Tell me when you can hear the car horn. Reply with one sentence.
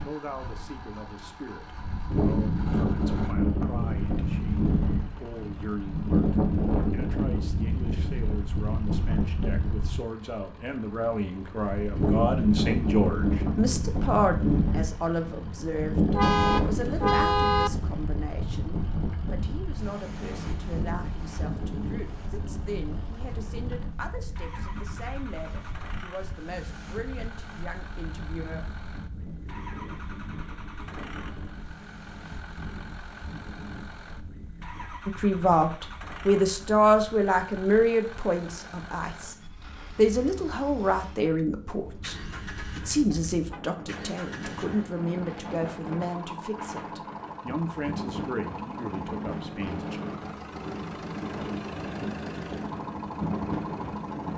The car horn can be heard from 16.1 to 17.7 s and from 41.9 to 43.6 s.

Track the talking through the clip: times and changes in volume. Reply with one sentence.
You can hear the talking from 0.0 to 28.6 s, getting louder then quieter; from 35.0 to 39.4 s, getting quieter; and from 40.0 to 50.0 s, getting quieter.